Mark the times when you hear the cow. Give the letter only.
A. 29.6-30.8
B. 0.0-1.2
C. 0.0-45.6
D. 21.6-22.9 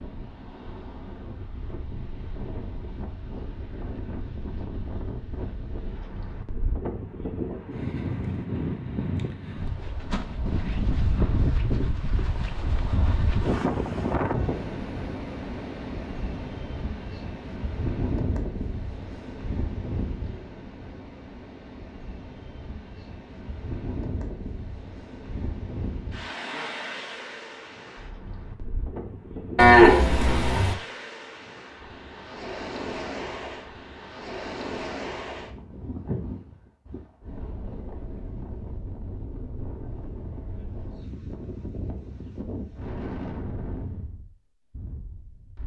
A.